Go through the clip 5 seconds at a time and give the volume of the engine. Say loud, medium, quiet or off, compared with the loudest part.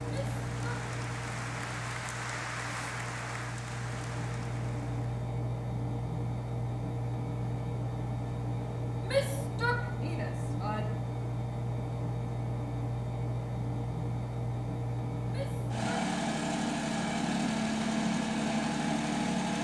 medium, loud, loud, loud.